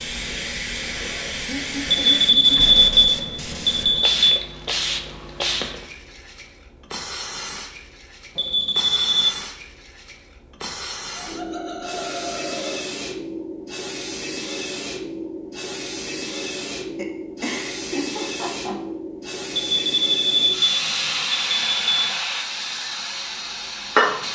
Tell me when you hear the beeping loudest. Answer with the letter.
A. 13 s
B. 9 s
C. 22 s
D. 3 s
D.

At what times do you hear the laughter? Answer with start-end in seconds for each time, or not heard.
1.4-2.6, 11.2-12.8, 16.9-18.8.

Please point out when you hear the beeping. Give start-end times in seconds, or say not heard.
1.9-4.4, 8.3-9.3, 19.5-22.2.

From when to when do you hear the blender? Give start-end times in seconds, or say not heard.
not heard.